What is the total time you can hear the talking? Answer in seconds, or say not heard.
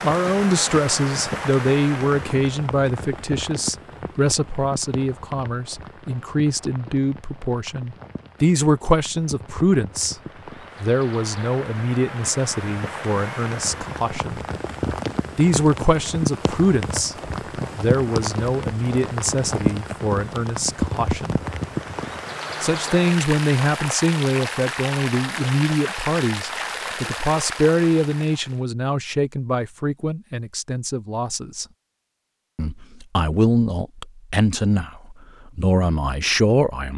33 s.